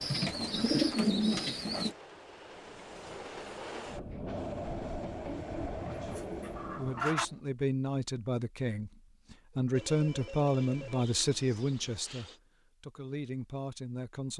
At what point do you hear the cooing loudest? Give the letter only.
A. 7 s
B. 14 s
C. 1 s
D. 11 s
C.